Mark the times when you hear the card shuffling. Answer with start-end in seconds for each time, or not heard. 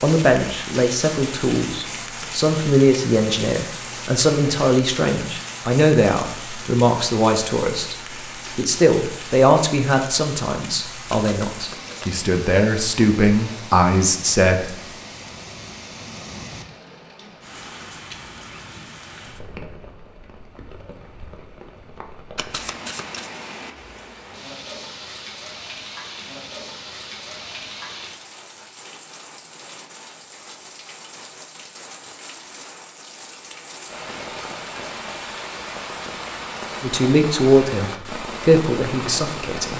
11.1-12.1, 22.4-23.3.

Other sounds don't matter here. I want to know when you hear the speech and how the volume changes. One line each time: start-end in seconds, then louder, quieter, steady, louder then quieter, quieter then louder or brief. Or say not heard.
0.0-14.7 steady
36.8-39.7 brief.